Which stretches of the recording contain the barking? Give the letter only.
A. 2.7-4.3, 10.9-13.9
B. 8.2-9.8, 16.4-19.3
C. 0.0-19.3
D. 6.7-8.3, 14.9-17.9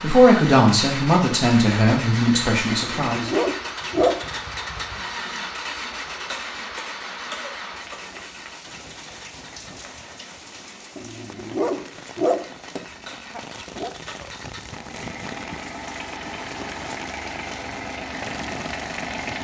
A.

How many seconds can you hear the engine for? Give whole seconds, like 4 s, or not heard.
19 s.